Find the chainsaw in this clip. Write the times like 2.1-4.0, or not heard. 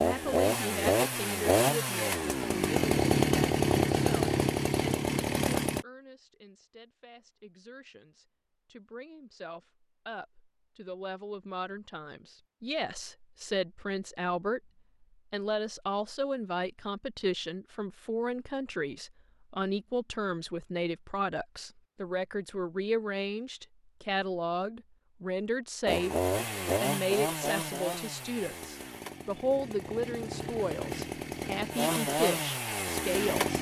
0.0-5.8, 25.9-33.5.